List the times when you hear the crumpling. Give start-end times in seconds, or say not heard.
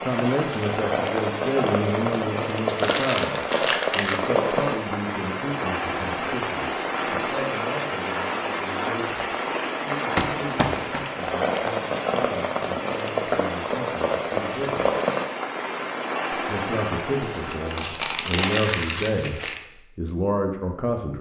2.6-4.3, 10.2-11.1, 17.2-19.6.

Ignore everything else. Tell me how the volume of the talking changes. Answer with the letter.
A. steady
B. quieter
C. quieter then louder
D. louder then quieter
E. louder
C.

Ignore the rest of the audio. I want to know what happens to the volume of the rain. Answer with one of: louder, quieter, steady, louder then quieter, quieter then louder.
steady.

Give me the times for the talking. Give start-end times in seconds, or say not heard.
0.0-14.9, 16.3-21.1.